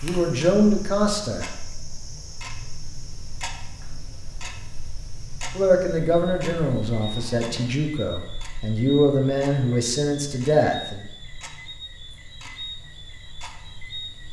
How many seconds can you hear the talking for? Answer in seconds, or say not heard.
7 s.